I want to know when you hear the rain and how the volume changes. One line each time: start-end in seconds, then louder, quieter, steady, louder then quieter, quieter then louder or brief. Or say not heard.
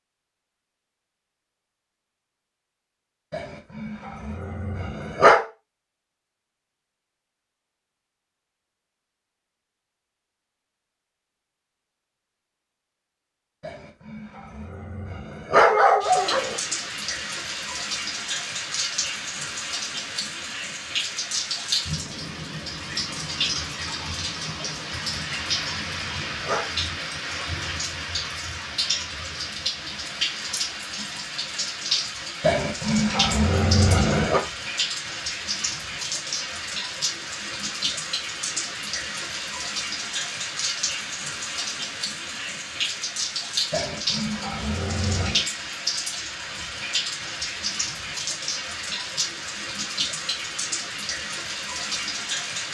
16.0-52.6 steady.